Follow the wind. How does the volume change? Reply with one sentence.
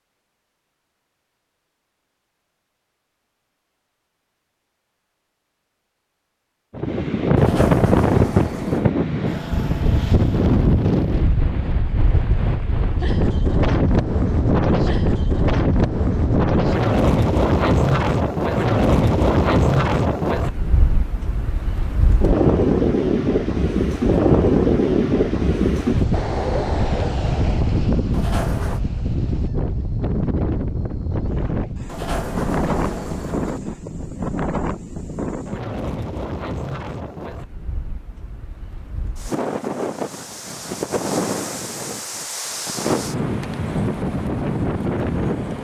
The loudness of the wind goes down.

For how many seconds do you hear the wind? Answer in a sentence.
You can hear the wind for 39 seconds altogether.